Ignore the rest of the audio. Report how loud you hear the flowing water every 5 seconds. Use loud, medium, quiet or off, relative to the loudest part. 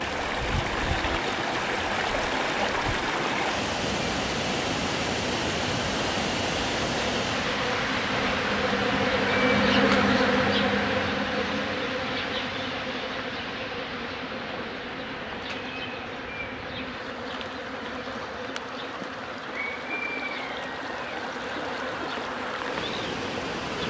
loud, loud, medium, medium, medium.